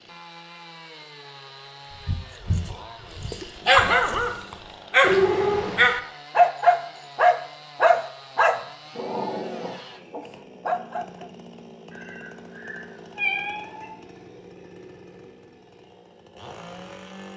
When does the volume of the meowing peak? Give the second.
5 s.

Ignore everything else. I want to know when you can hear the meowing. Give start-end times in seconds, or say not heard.
5.0-5.9, 11.9-13.9.